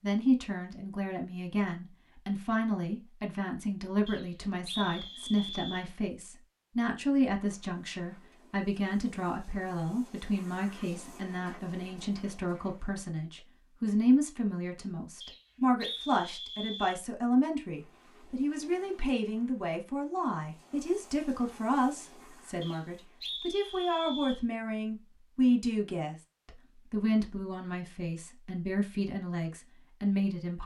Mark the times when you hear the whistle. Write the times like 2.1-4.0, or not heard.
4.0-5.8, 15.2-17.0, 22.6-24.4.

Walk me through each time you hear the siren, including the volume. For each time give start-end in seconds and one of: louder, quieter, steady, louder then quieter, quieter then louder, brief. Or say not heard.
not heard.